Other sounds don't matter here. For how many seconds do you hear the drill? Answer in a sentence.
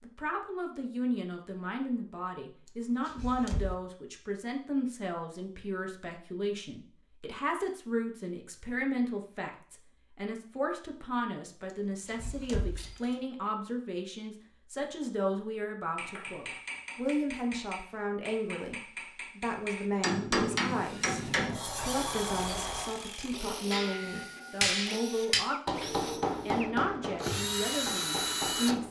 You can hear the drill for 8 seconds altogether.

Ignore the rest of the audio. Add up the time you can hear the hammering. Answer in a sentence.
You can hear the hammering for 11 seconds altogether.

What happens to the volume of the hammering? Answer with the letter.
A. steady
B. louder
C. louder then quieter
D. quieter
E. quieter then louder
C.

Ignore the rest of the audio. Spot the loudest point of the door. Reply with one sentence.
The loudest moment of the door is at 22 seconds.